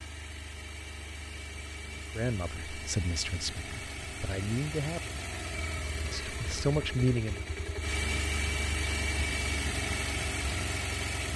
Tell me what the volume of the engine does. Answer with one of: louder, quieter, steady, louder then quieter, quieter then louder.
louder.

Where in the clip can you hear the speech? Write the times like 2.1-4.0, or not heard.
2.1-5.2, 6.1-7.5.